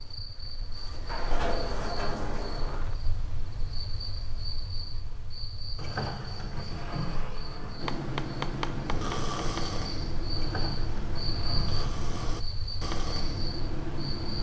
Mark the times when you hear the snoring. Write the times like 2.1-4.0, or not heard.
7.8-14.3.